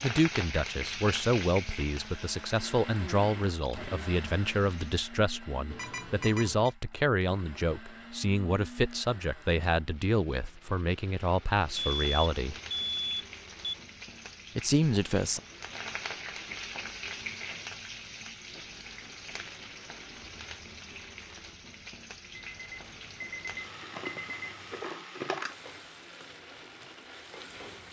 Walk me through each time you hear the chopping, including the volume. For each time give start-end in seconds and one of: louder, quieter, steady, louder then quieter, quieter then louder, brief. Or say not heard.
not heard.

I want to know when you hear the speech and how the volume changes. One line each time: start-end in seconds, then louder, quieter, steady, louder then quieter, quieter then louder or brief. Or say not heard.
0.0-12.6 steady
14.6-15.4 brief.